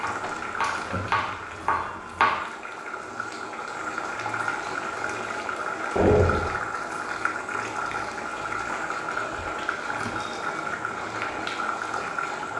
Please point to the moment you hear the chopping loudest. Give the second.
2 s.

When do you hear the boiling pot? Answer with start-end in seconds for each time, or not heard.
0.0-12.5.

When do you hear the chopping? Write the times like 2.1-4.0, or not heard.
0.0-2.5.